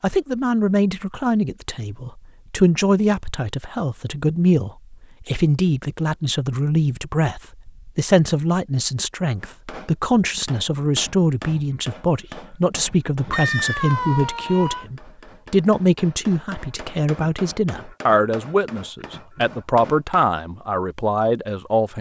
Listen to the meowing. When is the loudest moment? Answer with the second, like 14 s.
14 s.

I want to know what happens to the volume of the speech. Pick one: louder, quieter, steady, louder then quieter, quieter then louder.
steady.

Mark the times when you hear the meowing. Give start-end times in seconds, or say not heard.
13.3-14.8.